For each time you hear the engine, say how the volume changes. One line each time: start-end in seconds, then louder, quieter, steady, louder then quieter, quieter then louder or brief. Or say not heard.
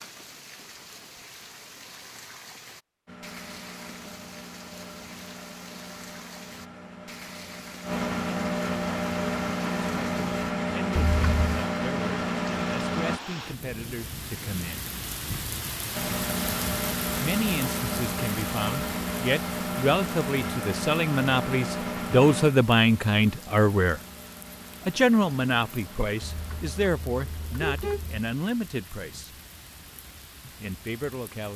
3.0-13.2 louder
15.9-26.9 quieter.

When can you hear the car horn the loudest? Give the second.
28 s.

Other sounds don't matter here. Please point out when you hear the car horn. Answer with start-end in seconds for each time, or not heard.
10.9-11.6, 26.2-28.2.